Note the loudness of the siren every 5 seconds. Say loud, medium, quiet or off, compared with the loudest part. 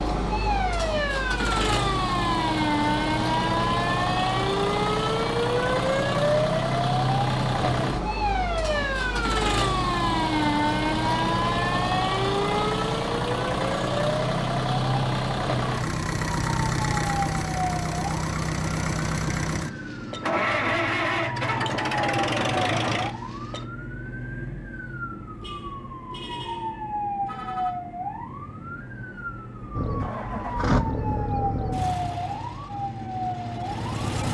loud, loud, loud, medium, medium, medium, medium.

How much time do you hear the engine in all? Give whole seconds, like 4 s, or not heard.
28 s.